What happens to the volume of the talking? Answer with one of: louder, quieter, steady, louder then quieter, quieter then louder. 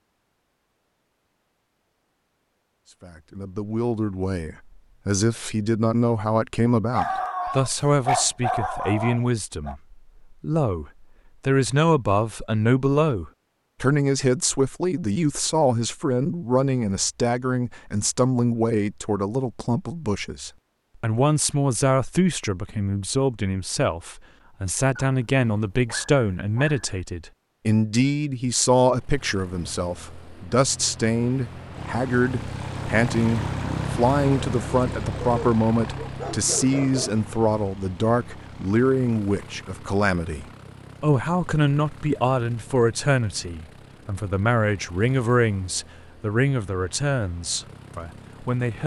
steady.